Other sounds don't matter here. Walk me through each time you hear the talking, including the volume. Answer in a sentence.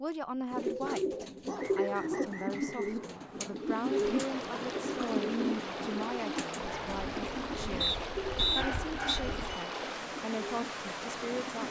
The talking can be heard from 0.0 to 11.6 s, at a steady volume.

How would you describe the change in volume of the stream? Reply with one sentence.
The loudness of the stream stays about the same.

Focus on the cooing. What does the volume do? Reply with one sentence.
The volume of the cooing goes down.